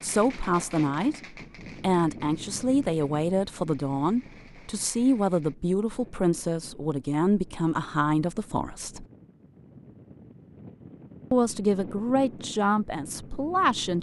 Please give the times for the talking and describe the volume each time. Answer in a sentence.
You can hear the talking from 0.0 to 9.1 s, at a steady volume; and briefly from 11.3 to 13.9 s.